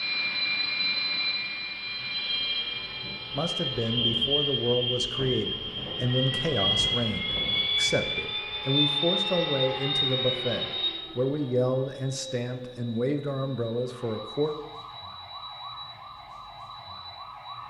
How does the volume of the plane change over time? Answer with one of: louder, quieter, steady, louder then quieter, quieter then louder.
quieter.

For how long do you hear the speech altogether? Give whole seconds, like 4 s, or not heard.
11 s.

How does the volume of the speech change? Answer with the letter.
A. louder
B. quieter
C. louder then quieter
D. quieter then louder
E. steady
E.